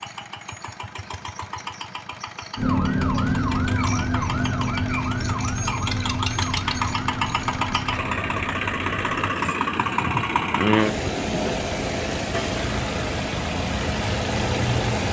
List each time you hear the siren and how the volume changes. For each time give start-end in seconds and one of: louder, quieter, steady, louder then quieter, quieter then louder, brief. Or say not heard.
2.5-9.4 quieter.